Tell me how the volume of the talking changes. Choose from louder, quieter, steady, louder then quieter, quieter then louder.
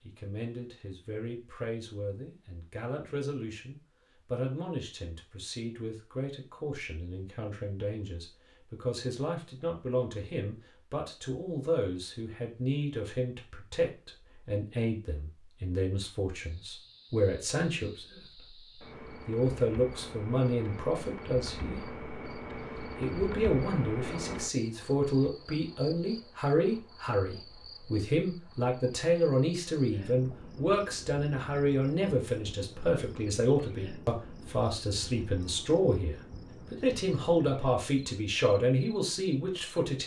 louder.